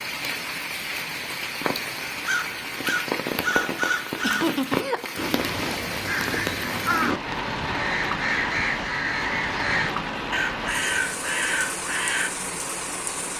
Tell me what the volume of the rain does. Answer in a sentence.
The loudness of the rain stays about the same.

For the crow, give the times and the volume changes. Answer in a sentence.
The crow can be heard from 2.1 to 12.3 s, at a steady volume.